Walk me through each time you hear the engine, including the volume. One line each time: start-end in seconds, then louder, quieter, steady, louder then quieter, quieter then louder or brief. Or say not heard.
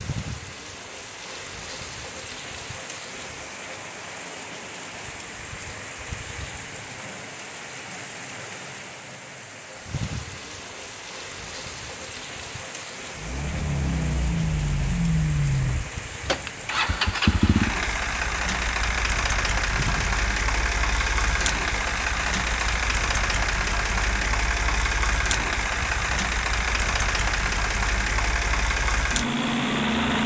13.2-30.2 steady.